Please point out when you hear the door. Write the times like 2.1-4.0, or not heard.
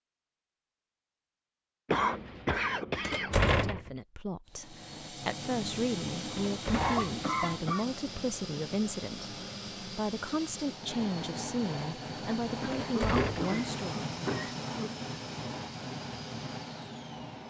3.0-3.9, 6.3-7.1, 12.7-13.6.